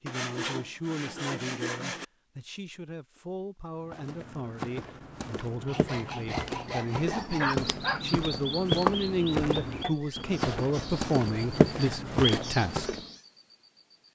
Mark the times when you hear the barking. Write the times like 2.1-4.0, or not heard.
7.3-8.1.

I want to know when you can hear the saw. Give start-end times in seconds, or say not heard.
0.1-2.0, 5.7-7.5, 9.8-12.5.